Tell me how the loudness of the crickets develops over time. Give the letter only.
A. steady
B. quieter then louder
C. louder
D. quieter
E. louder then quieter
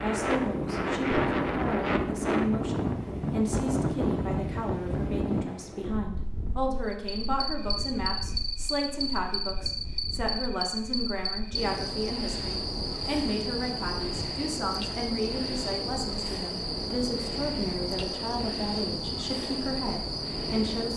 A.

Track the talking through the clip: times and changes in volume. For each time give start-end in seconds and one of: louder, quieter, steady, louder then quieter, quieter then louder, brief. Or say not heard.
0.0-20.9 steady.